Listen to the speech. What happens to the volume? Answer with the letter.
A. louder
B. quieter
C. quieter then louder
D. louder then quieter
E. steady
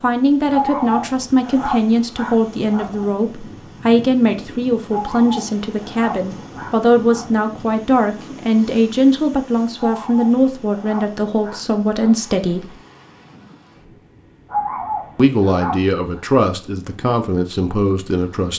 E.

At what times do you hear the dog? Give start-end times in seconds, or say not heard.
0.5-3.1, 4.9-7.5, 9.8-12.3, 14.4-16.2.